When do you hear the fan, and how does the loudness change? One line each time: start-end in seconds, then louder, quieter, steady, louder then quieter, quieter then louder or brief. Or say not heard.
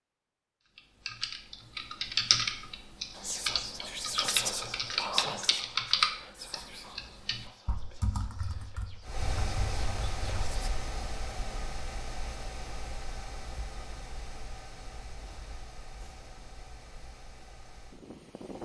9.1-18.6 quieter.